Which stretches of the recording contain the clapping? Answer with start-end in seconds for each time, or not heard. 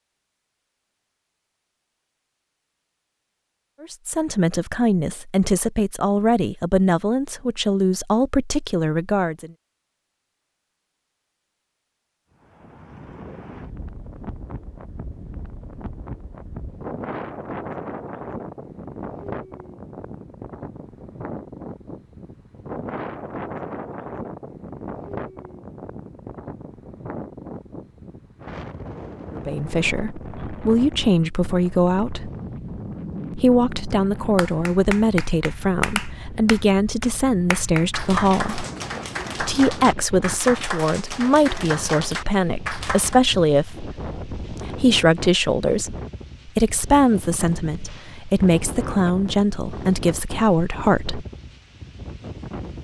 34.4-43.2.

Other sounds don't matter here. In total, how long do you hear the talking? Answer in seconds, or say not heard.
26 s.